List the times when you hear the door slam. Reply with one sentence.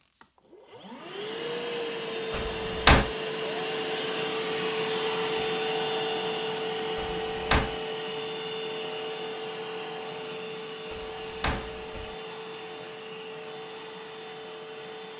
You can hear the door slam from 2.3 to 3.1 s, from 7.0 to 7.8 s and from 10.9 to 12.2 s.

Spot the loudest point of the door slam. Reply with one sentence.
The volume of the door slam peaks at 3 seconds.